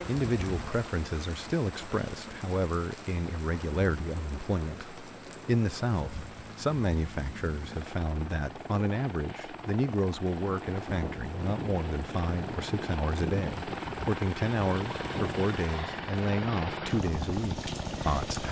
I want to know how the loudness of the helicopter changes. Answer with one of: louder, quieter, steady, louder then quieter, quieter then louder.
louder.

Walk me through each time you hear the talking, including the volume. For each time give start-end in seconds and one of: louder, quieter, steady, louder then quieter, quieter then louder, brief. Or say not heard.
0.1-18.4 steady.